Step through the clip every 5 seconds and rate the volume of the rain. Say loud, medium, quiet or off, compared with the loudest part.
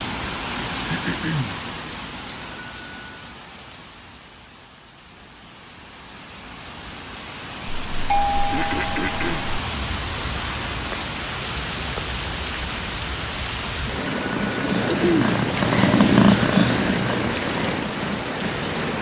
medium, medium, loud, loud.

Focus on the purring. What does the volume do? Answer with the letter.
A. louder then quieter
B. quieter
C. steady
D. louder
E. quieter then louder
A.